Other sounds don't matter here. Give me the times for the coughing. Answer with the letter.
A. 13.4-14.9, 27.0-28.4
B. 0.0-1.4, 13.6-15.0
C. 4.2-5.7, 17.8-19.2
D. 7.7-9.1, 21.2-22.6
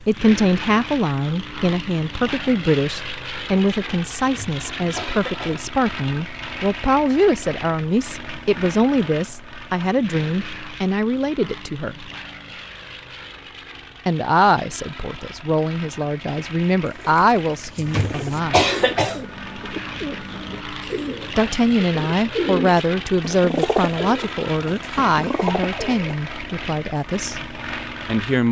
C.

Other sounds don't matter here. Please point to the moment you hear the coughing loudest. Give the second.
19 s.